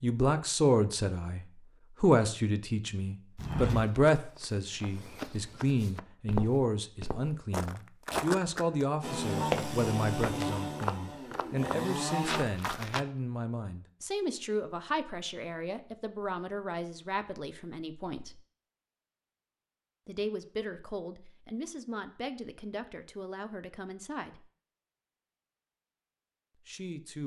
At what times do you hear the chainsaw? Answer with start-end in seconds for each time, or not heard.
9.0-12.4.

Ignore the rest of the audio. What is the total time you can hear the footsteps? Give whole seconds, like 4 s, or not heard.
9 s.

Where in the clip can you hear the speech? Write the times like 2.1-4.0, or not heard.
0.0-18.4, 20.1-24.4, 26.6-27.2.